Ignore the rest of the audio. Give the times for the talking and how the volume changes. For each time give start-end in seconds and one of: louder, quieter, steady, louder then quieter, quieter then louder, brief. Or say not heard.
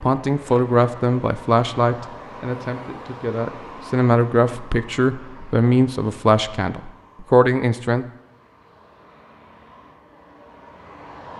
0.0-8.1 quieter then louder.